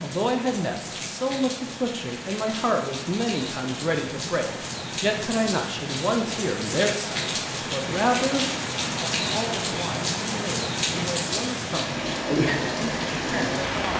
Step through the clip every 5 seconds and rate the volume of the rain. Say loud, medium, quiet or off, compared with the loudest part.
medium, loud, loud.